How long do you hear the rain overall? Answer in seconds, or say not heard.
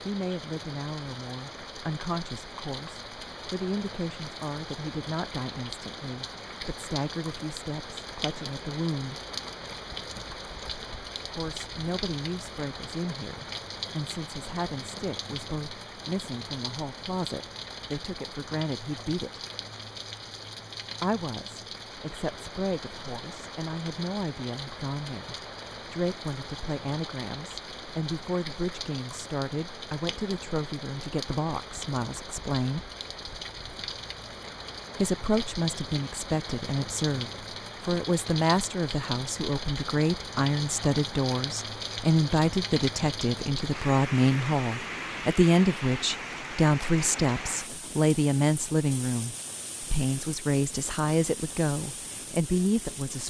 53 s.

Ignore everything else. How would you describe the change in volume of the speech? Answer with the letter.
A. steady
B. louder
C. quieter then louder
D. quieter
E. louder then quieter
B.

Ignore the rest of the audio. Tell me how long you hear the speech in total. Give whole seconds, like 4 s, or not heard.
47 s.